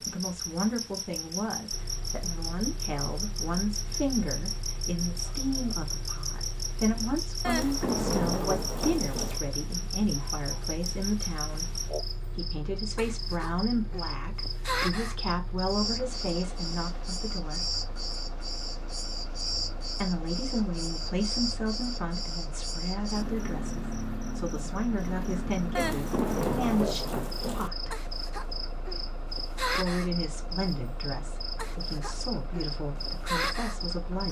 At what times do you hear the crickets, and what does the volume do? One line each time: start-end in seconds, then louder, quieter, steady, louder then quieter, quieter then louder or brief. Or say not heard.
0.0-34.2 steady.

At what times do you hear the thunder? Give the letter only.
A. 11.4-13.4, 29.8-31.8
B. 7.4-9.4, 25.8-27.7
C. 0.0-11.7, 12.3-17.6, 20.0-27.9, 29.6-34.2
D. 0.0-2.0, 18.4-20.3
B.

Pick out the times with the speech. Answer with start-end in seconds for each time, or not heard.
0.0-11.7, 12.3-17.6, 20.0-27.9, 29.6-34.2.